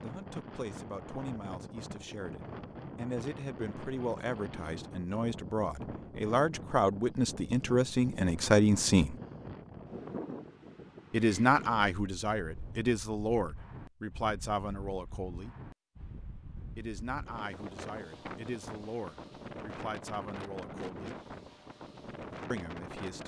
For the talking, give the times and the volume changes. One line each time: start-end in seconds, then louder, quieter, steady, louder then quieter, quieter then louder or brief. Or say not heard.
0.0-9.2 louder
11.1-15.6 quieter
16.8-21.1 steady
22.5-23.2 brief.